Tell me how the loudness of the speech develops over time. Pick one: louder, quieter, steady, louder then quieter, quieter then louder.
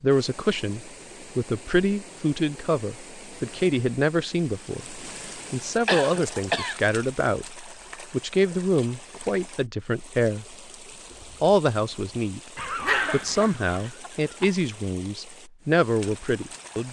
steady.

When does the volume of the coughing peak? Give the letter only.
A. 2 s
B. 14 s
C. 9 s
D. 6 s
D.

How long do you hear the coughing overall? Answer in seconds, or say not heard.
3 s.